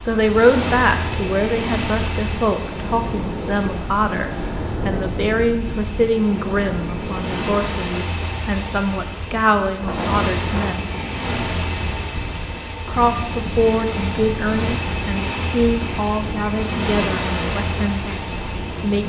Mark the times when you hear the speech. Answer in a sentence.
You can hear the speech from 0.1 to 10.9 s and from 12.8 to 19.0 s.